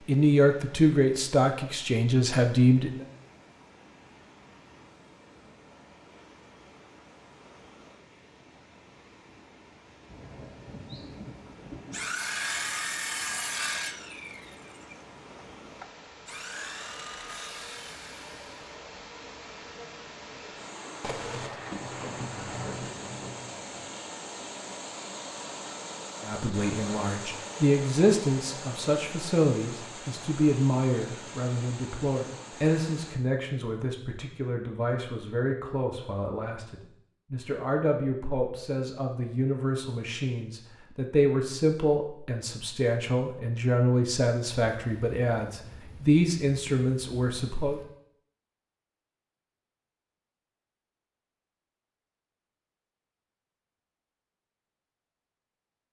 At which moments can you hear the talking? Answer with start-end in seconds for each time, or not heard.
0.1-3.0, 26.2-47.8.